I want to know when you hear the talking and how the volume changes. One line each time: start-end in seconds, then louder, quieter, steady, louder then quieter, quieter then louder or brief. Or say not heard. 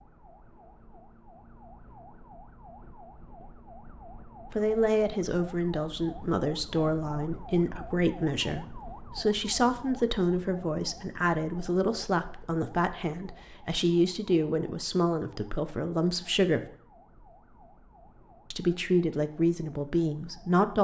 4.5-16.6 steady
18.5-20.7 brief.